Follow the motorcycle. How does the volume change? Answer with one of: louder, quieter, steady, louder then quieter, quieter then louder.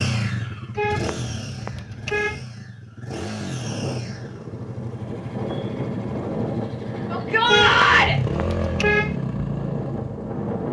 quieter then louder.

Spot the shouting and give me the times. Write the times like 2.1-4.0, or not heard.
7.1-8.2.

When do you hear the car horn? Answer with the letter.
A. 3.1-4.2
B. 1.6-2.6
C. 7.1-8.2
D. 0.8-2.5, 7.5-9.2
D.